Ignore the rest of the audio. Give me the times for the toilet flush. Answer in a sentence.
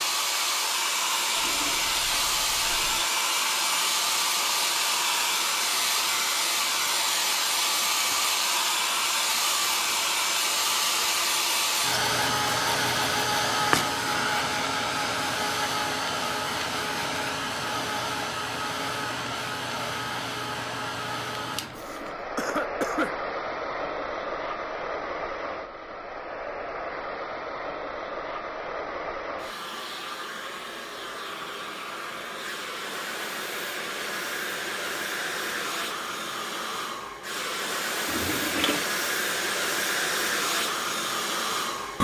You can hear the toilet flush from 1.4 to 3.1 s, from 21.6 to 22.2 s and from 38.0 to 38.9 s.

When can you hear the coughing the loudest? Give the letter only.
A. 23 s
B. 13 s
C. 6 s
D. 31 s
A.